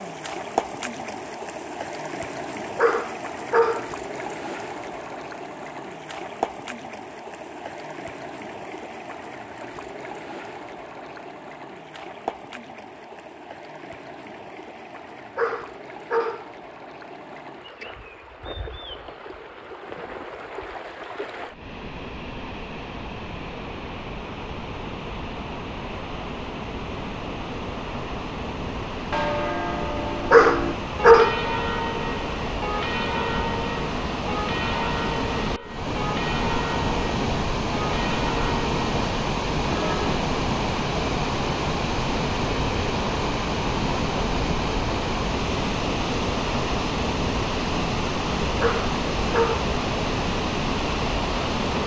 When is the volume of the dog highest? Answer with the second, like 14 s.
31 s.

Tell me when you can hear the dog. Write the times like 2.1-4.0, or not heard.
2.8-4.0, 15.3-16.5, 30.3-31.4, 48.6-49.7.